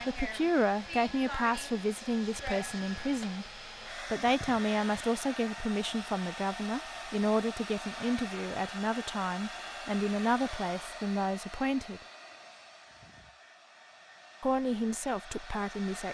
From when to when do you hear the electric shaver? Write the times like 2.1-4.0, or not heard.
not heard.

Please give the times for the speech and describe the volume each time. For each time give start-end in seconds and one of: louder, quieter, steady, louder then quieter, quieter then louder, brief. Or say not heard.
0.0-12.0 steady
14.4-16.0 brief.